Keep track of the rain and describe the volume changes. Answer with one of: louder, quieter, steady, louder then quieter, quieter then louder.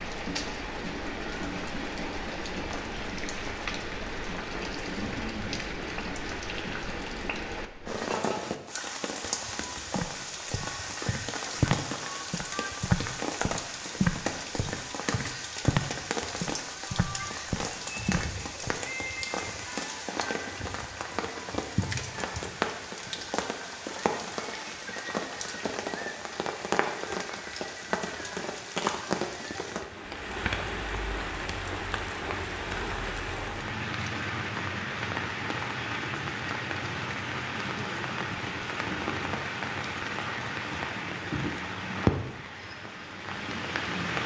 steady.